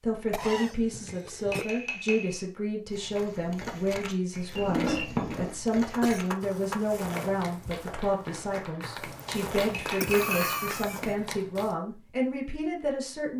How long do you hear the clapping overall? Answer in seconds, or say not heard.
6 s.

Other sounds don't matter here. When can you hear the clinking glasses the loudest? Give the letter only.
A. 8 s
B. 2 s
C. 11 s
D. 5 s
D.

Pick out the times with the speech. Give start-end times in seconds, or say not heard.
0.0-13.3.